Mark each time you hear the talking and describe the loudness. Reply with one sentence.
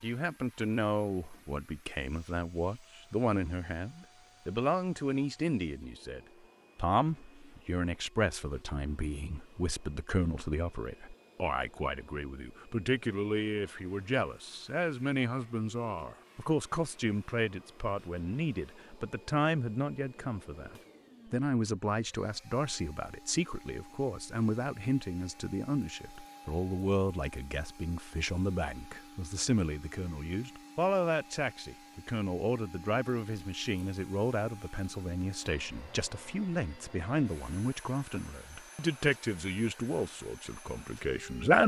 The talking can be heard from 0.0 to 41.6 s, at a steady volume.